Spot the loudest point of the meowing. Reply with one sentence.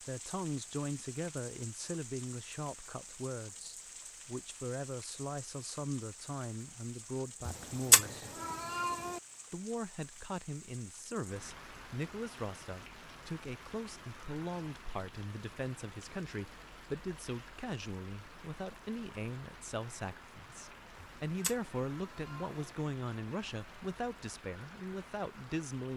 The loudest moment of the meowing is at 8 seconds.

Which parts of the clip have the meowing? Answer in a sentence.
The meowing can be heard from 7.5 to 9.2 s and from 20.9 to 22.6 s.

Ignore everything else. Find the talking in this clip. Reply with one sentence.
You can hear the talking from 0.0 to 8.2 s and from 9.5 to 25.9 s.